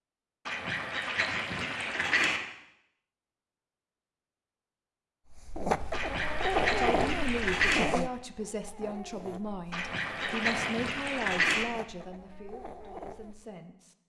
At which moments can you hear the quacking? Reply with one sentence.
The quacking can be heard from 0.5 to 2.4 s, from 5.9 to 7.8 s and from 9.7 to 11.7 s.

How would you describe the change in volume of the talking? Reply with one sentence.
The loudness of the talking goes down.